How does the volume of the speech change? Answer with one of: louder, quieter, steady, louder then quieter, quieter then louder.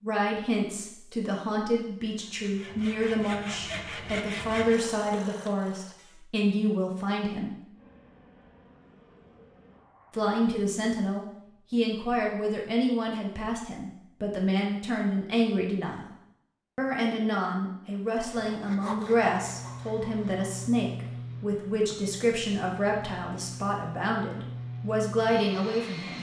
steady.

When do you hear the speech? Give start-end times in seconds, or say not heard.
0.0-7.7, 10.1-16.1, 16.8-26.1.